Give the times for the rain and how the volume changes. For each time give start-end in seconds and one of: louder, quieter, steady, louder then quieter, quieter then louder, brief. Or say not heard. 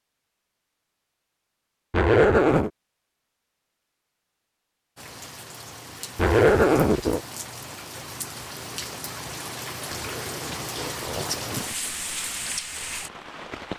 5.0-13.7 louder.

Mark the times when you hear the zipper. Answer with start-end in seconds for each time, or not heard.
1.9-2.7, 6.2-7.2, 9.9-11.7.